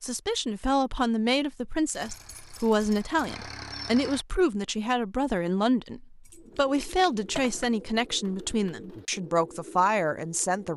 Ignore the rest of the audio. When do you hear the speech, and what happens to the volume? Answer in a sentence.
You can hear the speech from 0.0 to 10.7 s, at a steady volume.